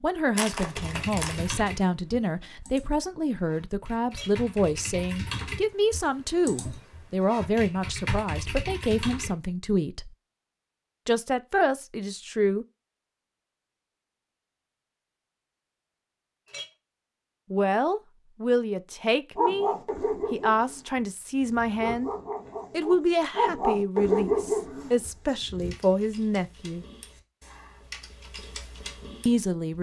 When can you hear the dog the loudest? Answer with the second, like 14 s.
24 s.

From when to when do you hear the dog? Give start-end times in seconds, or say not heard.
19.4-25.8.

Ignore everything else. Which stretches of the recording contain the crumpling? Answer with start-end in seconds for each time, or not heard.
0.3-1.6.